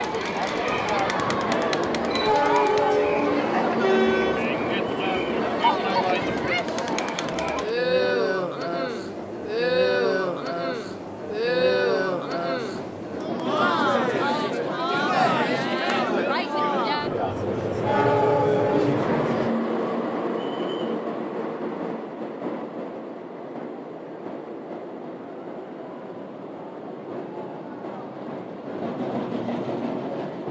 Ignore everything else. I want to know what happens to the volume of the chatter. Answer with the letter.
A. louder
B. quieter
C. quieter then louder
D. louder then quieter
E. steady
E.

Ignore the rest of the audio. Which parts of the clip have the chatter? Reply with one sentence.
The chatter can be heard from 0.0 to 19.5 s.